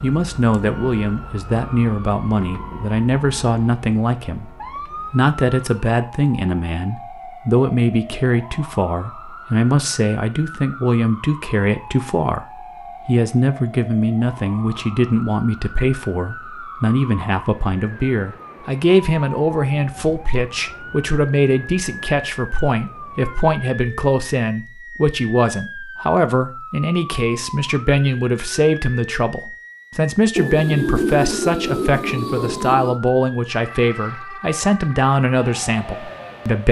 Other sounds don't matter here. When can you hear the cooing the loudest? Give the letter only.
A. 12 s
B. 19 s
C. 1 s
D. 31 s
D.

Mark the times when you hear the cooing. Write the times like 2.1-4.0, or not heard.
30.4-33.0.